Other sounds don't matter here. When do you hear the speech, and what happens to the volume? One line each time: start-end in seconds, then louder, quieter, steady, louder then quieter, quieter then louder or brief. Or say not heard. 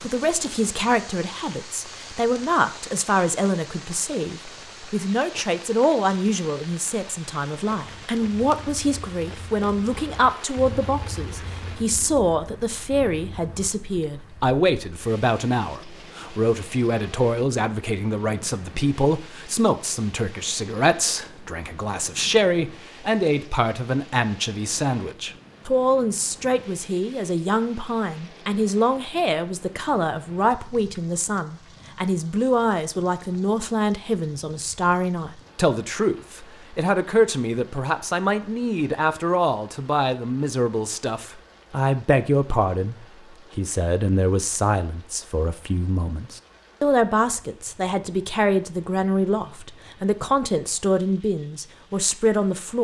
0.0-52.7 steady.